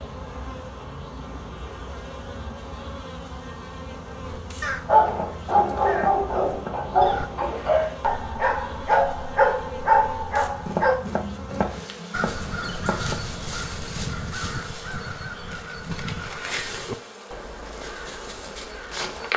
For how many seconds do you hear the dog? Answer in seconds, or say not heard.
6 s.